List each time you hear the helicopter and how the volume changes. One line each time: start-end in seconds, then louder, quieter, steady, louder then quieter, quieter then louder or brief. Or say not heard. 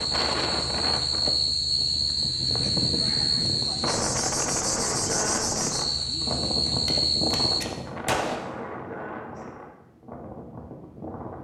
not heard.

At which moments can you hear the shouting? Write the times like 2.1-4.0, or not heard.
not heard.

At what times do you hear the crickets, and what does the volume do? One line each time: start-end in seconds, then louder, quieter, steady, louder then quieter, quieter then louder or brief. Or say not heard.
0.0-7.7 steady.